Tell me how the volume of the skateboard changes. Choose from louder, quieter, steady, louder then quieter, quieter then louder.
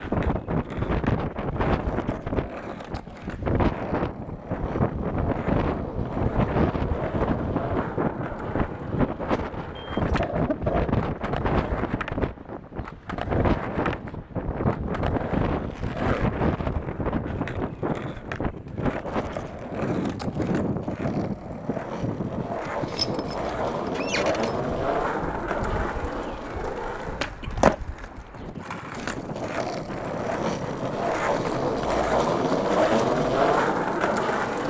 louder.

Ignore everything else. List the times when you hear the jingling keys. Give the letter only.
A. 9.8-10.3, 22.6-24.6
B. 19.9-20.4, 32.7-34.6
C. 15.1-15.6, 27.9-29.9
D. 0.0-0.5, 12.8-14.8
A.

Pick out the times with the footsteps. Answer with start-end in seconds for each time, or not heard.
not heard.